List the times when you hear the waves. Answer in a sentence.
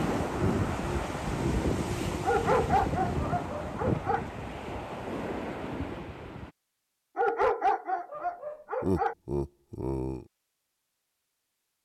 You can hear the waves from 0.0 to 6.5 s.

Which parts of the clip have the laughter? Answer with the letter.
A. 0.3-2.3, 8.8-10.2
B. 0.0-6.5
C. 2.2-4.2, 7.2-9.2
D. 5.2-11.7
A.